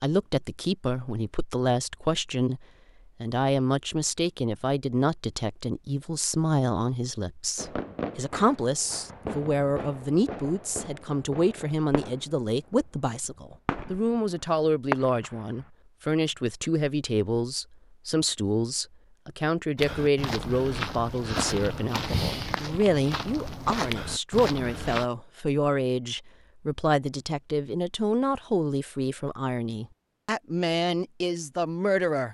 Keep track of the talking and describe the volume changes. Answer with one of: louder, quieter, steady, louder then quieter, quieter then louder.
steady.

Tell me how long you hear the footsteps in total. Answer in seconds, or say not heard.
5 s.